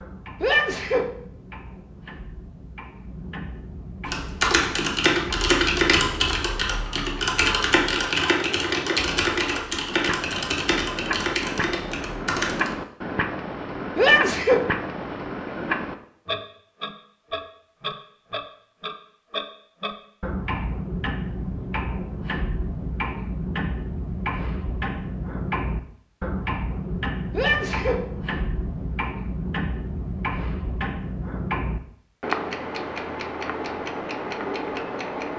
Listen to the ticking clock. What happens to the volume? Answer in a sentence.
The volume of the ticking clock goes up.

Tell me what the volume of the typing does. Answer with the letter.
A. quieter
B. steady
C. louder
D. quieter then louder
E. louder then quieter
A.